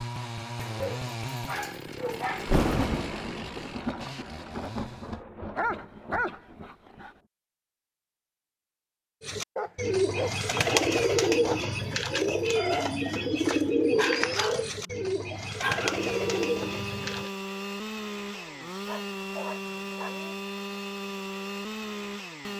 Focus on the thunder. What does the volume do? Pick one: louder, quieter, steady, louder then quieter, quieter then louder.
quieter.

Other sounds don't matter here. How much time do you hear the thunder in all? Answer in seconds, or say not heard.
5 s.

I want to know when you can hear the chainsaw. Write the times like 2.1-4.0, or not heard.
0.0-5.2, 15.7-22.5.